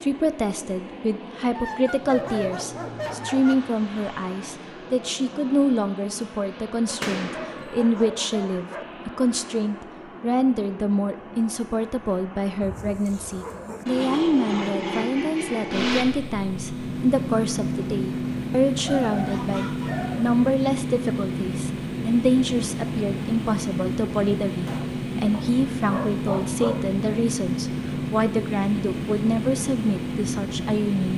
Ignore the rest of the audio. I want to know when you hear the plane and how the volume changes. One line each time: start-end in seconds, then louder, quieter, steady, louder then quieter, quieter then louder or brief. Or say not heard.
0.0-31.1 louder.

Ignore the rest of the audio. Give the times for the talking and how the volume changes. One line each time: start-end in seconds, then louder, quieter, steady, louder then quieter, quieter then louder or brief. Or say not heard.
0.0-31.1 steady.